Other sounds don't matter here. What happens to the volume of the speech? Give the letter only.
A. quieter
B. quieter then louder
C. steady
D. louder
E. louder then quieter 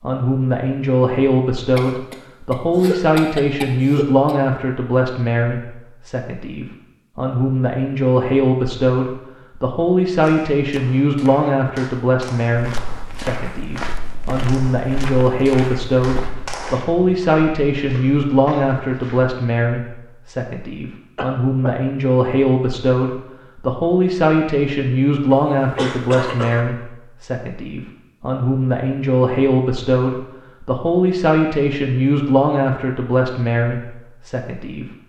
C.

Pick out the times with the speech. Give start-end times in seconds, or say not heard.
0.0-34.9.